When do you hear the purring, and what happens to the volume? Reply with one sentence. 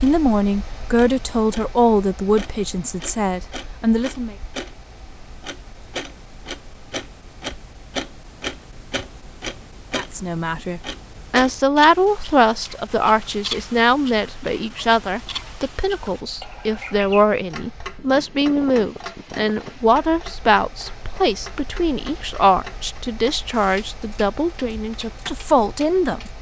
You can't hear the purring here.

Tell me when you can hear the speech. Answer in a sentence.
You can hear the speech from 0.0 to 4.3 s and from 9.9 to 26.3 s.